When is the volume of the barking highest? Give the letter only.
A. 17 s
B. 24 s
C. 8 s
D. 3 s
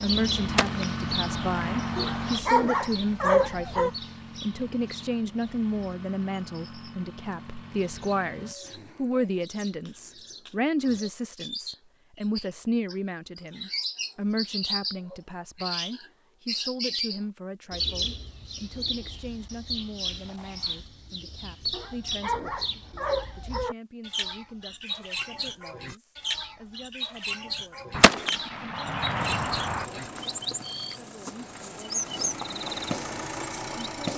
D.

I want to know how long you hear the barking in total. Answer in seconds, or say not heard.
4 s.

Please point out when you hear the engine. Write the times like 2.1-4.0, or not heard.
0.0-8.6, 29.2-34.1.